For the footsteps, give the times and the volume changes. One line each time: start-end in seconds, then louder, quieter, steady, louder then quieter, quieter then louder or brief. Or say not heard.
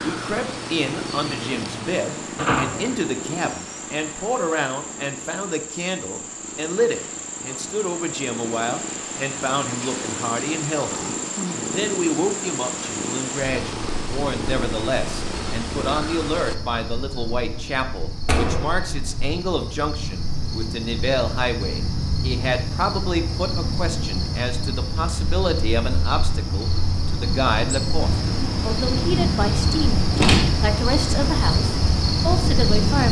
not heard.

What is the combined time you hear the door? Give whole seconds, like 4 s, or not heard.
2 s.